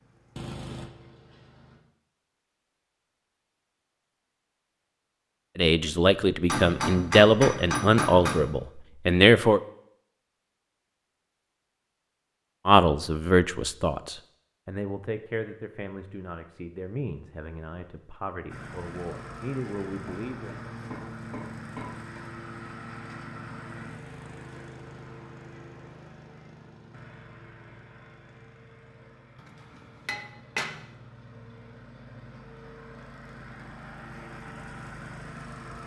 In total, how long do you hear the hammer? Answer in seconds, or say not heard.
6 s.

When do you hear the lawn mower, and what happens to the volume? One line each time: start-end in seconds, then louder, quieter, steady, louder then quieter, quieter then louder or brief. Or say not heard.
0.0-1.8 brief
18.4-35.8 quieter then louder.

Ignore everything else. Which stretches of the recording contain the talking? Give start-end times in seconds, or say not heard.
5.5-9.6, 12.7-20.5.